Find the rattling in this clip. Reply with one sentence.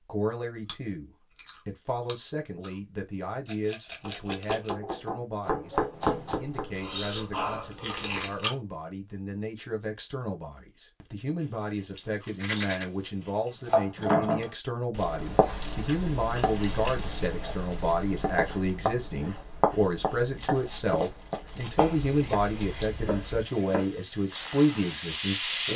The rattling can be heard from 3.5 to 4.8 s, from 12.2 to 12.8 s and from 20.4 to 22.9 s.